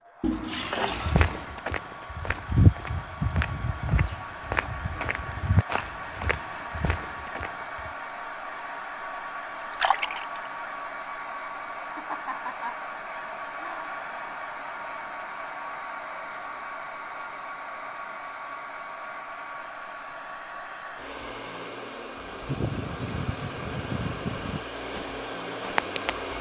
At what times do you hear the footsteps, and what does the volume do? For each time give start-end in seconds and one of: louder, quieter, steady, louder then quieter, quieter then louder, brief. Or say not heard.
0.8-7.9 louder then quieter
24.9-26.1 brief.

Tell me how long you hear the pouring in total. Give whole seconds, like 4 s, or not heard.
4 s.